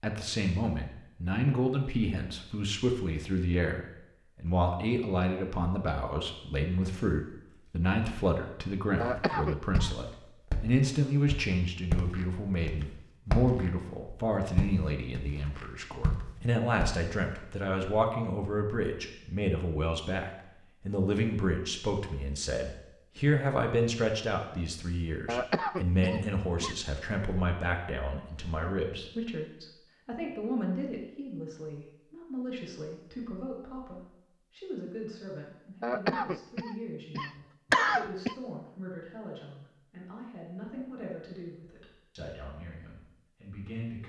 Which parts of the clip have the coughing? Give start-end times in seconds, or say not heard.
8.9-9.9, 25.2-26.8, 35.8-38.4.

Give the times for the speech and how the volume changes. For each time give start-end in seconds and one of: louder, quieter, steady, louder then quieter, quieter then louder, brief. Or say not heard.
0.0-44.0 quieter.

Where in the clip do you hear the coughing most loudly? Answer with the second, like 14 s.
38 s.